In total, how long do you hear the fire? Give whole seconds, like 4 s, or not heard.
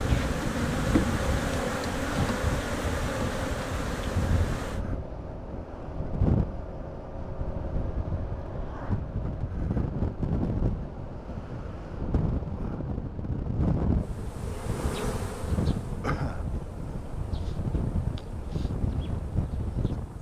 not heard.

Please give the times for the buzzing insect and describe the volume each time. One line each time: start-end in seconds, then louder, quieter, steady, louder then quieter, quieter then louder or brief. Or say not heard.
0.0-4.8 quieter
13.9-20.1 quieter.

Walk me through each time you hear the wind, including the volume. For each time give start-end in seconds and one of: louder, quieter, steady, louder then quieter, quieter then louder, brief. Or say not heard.
0.0-20.1 steady.